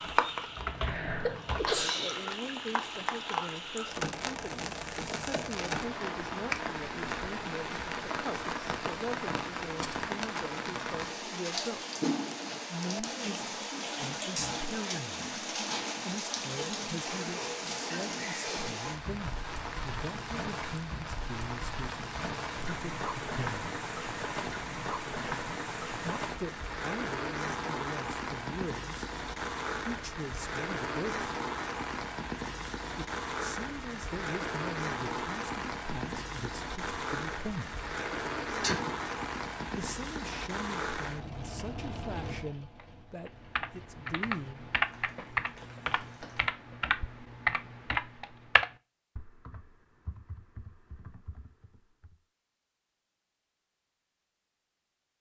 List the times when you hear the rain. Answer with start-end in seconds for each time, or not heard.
0.0-46.5.